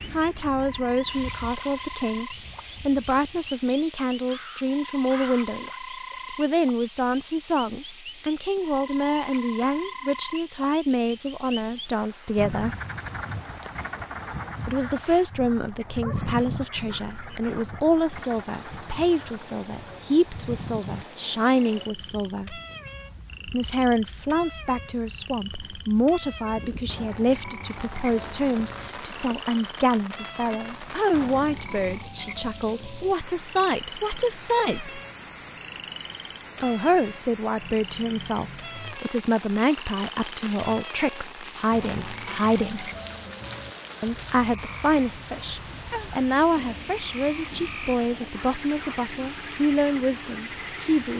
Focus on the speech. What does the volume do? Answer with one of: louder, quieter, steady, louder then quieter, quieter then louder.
steady.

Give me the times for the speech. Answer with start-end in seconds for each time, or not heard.
0.1-12.8, 14.7-22.6, 23.4-35.0, 36.6-42.9, 44.0-51.1.